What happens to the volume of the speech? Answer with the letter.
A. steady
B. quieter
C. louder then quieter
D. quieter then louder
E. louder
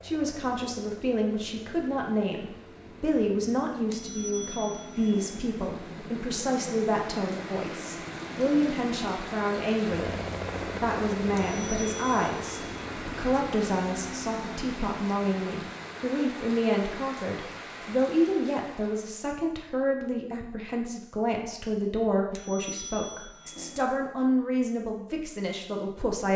A.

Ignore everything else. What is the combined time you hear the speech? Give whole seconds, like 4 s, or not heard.
26 s.